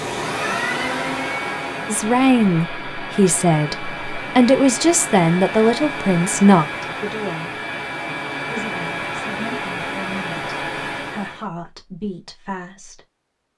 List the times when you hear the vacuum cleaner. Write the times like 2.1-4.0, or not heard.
0.0-11.4.